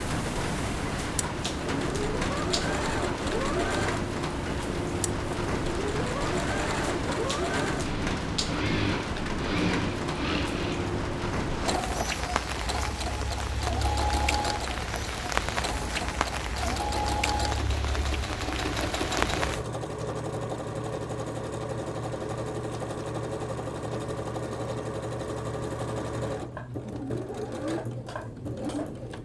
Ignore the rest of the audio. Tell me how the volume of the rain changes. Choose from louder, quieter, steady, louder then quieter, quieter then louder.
steady.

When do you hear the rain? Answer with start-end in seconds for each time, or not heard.
0.0-19.6.